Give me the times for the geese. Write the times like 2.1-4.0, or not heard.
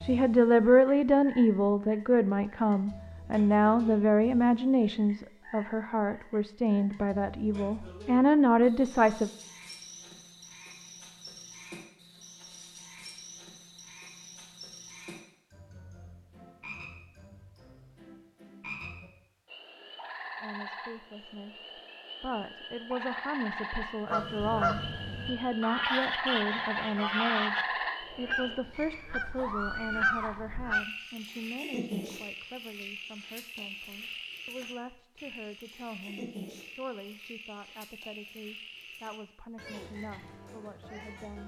24.1-30.9.